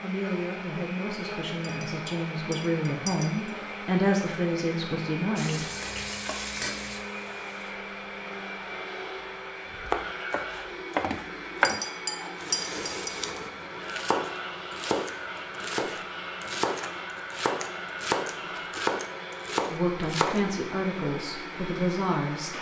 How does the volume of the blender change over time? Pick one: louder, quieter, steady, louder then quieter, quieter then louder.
steady.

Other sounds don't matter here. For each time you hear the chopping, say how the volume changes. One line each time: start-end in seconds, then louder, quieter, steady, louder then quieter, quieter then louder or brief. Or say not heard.
9.7-20.5 quieter then louder.